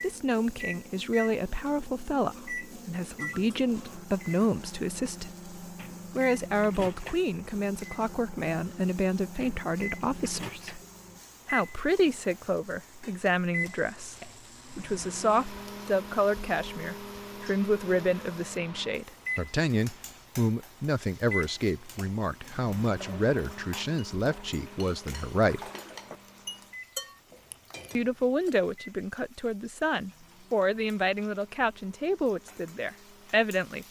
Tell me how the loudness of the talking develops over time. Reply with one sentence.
The loudness of the talking stays about the same.